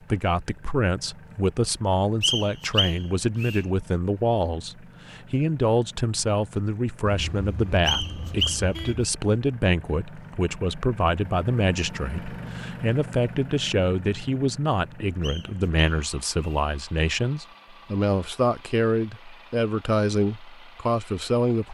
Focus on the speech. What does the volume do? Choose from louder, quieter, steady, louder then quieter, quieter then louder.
steady.